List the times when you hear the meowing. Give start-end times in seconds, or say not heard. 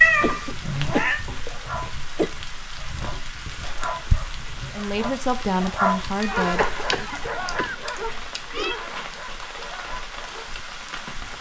0.0-1.2, 6.2-8.8.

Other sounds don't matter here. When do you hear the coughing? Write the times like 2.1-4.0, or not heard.
0.2-2.3, 6.5-7.8.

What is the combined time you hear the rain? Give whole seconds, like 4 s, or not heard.
11 s.